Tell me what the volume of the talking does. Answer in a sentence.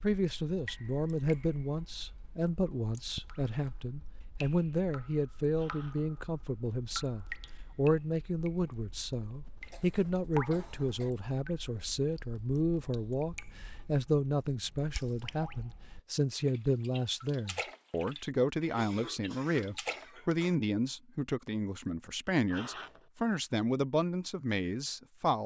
The volume of the talking stays about the same.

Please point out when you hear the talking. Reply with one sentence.
The talking can be heard from 0.0 to 25.4 s.